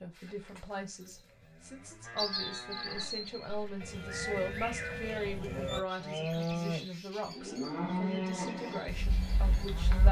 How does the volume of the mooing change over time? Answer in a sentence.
The volume of the mooing goes up.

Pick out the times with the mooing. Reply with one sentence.
You can hear the mooing from 0.1 to 10.0 s.